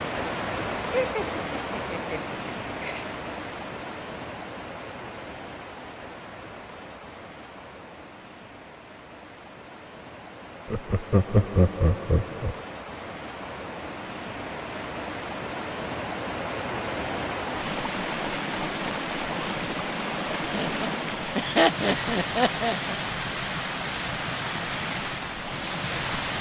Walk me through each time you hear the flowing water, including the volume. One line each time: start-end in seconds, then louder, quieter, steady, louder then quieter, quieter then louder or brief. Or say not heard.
0.0-26.3 quieter then louder.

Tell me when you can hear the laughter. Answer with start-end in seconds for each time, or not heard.
0.9-3.0, 10.7-12.6, 20.5-22.9.